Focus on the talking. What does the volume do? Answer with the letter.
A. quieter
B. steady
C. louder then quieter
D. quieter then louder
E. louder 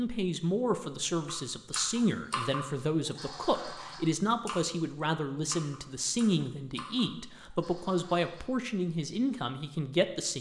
B.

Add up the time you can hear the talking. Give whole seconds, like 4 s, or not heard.
10 s.